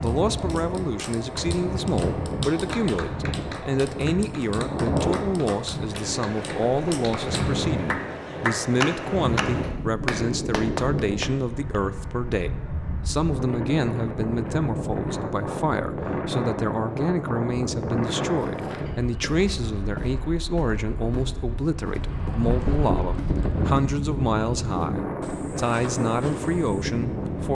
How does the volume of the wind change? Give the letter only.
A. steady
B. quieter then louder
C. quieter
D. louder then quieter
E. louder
A.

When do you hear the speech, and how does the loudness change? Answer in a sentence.
The speech can be heard from 0.0 to 27.4 s, at a steady volume.